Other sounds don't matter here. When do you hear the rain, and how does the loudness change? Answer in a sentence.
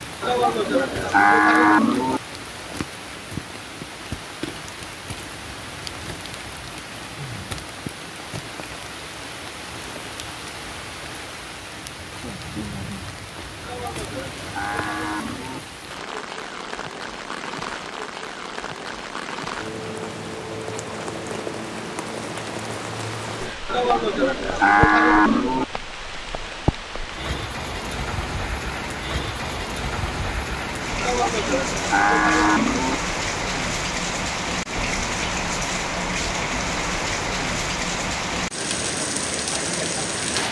The rain can be heard from 0.0 to 40.4 s, getting louder.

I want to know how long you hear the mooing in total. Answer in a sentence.
The mooing can be heard for 8 seconds in total.